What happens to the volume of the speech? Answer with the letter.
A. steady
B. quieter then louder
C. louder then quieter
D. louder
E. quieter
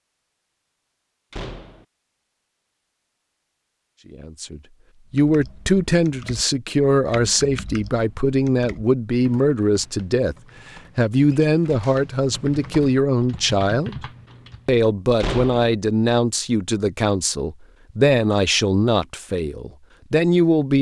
A.